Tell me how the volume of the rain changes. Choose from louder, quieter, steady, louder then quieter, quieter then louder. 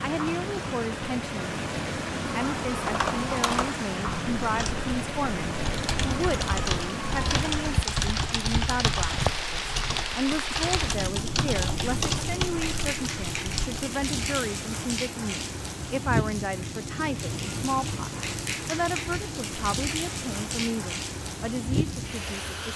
steady.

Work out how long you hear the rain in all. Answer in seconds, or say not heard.
23 s.